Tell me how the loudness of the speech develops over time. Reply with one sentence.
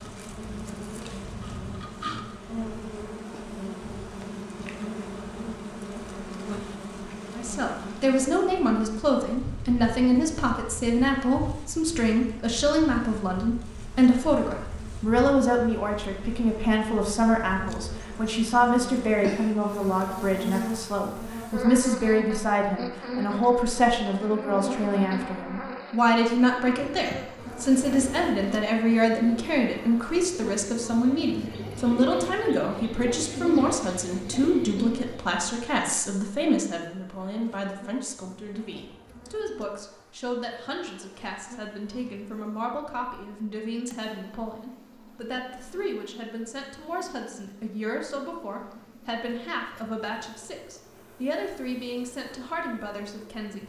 The loudness of the speech goes down.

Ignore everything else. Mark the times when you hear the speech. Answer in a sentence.
The speech can be heard from 7.3 to 53.6 s.